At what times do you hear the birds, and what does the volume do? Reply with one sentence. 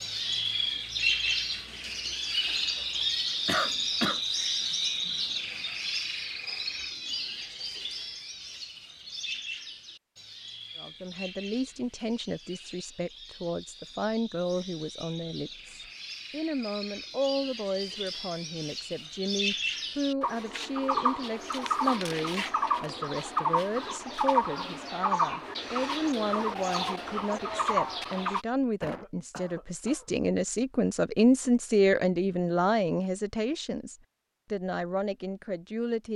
The birds can be heard from 0.0 to 28.4 s, getting quieter then louder.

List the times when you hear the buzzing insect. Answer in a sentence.
You can't hear the buzzing insect here.